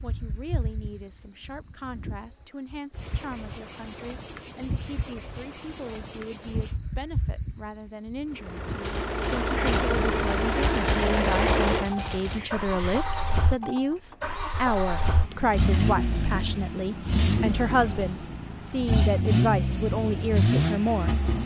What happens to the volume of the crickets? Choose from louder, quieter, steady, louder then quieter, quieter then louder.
louder.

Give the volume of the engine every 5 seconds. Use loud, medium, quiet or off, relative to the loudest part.
off, loud, loud, loud, loud.